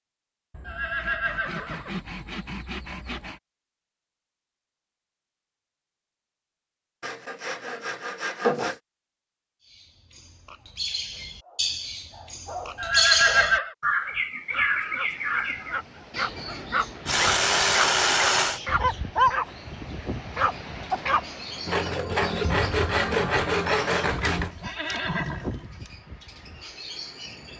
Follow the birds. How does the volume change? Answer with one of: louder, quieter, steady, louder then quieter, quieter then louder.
quieter.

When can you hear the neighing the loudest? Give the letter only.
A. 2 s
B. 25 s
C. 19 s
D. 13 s
D.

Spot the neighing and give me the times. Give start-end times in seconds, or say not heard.
0.7-2.0, 12.8-13.8, 24.1-25.9.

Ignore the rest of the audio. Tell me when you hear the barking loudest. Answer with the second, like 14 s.
19 s.